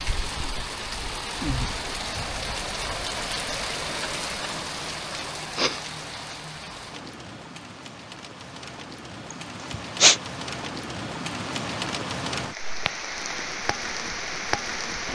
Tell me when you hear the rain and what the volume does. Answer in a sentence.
The rain can be heard from 0.0 to 15.1 s, getting quieter then louder.